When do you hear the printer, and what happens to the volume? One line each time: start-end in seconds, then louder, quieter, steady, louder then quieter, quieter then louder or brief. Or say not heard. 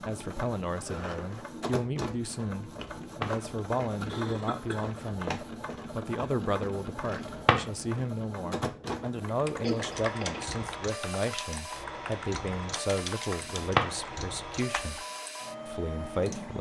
0.0-16.5 steady.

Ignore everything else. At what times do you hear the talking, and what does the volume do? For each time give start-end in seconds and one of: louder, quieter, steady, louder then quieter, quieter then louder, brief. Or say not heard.
0.1-15.1 steady
15.7-16.5 brief.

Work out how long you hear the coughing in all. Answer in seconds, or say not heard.
2 s.